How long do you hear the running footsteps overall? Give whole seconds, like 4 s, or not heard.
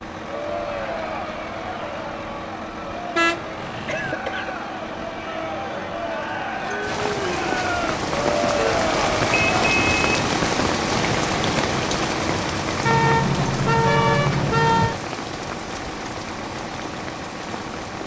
not heard.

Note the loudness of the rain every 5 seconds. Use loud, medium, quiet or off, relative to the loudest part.
off, loud, loud, medium.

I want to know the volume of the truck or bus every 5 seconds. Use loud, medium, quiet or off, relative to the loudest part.
medium, loud, loud, medium.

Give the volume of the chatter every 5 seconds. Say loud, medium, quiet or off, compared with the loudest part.
medium, loud, off, off.